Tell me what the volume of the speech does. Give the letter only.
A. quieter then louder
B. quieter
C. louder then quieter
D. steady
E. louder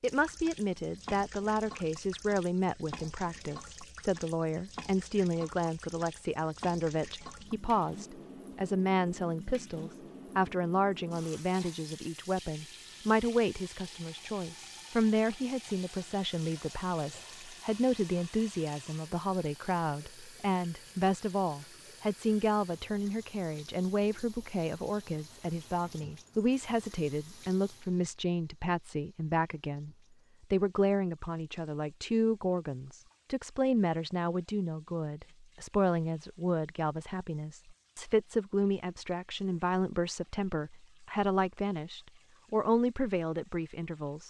D.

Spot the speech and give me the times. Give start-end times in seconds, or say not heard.
0.0-29.9, 30.5-44.2.